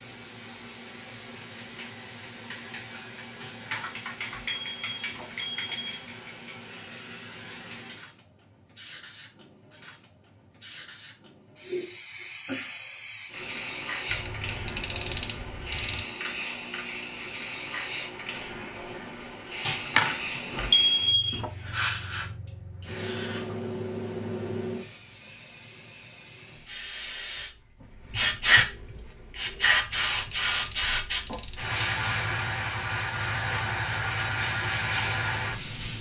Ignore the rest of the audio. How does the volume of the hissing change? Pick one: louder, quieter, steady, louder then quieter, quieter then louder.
louder.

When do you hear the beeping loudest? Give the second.
21 s.